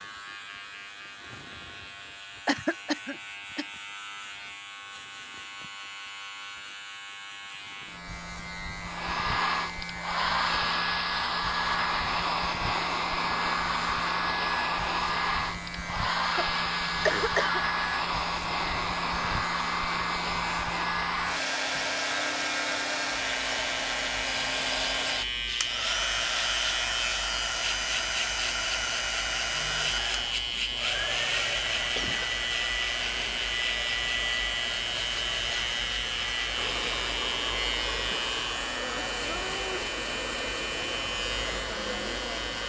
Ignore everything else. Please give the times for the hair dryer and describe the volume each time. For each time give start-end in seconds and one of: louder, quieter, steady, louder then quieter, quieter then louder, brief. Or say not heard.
8.8-42.6 quieter.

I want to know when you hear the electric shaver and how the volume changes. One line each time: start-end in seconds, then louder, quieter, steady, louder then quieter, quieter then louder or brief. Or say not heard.
0.0-42.6 louder.